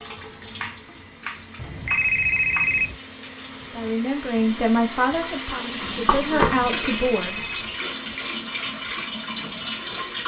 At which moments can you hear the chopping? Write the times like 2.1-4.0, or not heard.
0.6-2.8, 5.8-6.7.